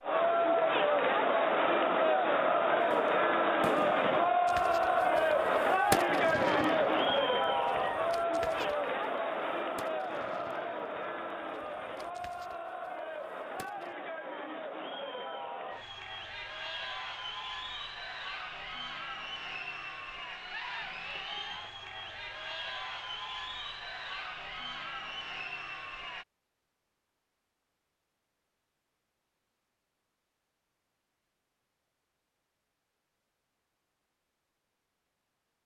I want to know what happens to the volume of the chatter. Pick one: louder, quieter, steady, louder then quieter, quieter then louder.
quieter.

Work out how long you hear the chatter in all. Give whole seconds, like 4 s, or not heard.
26 s.